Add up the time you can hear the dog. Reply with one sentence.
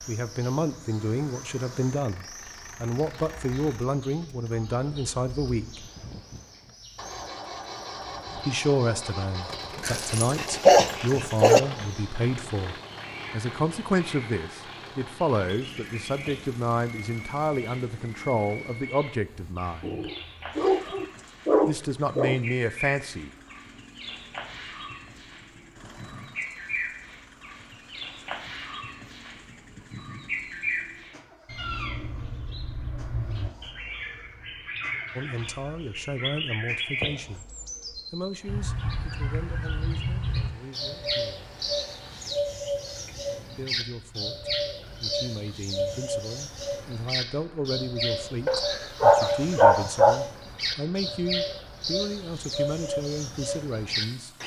You can hear the dog for 6 seconds altogether.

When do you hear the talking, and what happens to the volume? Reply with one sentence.
You can hear the talking from 0.1 to 5.8 s, at a steady volume; from 8.3 to 20.1 s, at a steady volume; briefly from 21.6 to 23.3 s; from 35.1 to 41.5 s, getting quieter; and from 43.5 to 54.3 s, getting louder.